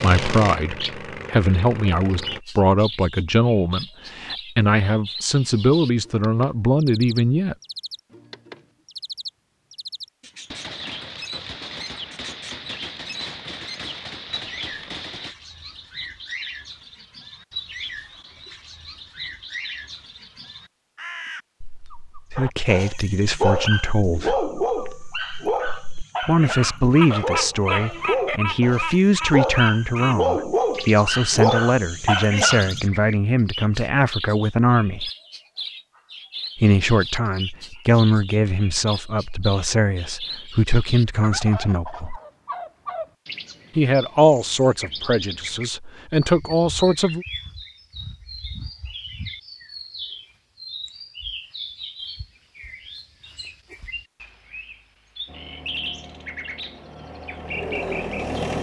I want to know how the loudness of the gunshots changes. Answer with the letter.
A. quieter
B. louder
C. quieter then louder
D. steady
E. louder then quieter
D.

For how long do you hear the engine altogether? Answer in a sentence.
You can hear the engine for 6 seconds altogether.